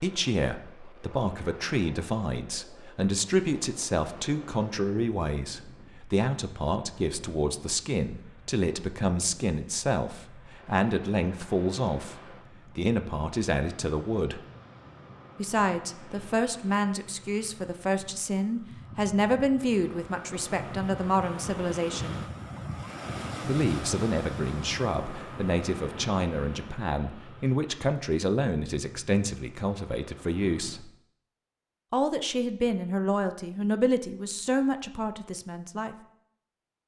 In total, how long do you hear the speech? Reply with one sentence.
The speech can be heard for 33 seconds in total.